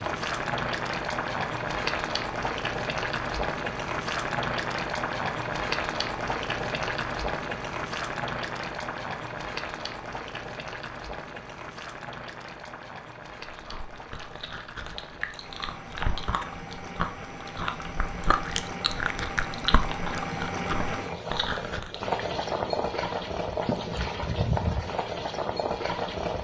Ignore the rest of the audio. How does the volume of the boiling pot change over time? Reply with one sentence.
The volume of the boiling pot goes down, then up.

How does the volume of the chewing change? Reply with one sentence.
The loudness of the chewing goes up.